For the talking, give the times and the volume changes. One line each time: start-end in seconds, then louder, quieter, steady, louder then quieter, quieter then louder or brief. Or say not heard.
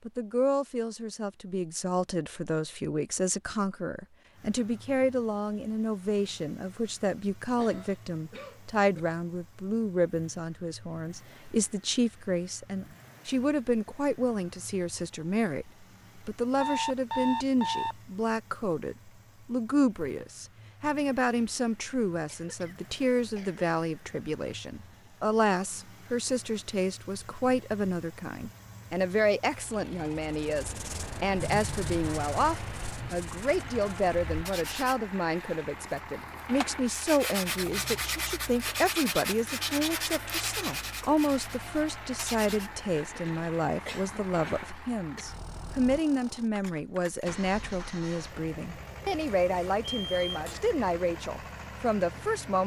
0.1-52.6 steady.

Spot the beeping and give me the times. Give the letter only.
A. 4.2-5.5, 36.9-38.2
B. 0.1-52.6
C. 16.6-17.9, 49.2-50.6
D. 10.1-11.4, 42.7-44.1
C.